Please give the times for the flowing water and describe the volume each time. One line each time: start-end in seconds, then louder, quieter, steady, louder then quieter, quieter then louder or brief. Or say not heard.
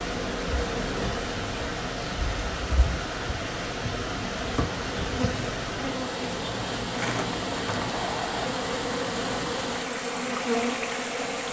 0.0-11.4 steady.